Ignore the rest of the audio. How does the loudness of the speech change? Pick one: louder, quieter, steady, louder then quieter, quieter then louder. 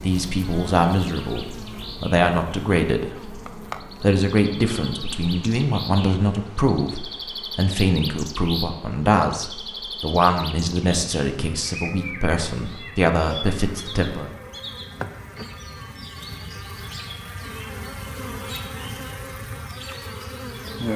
steady.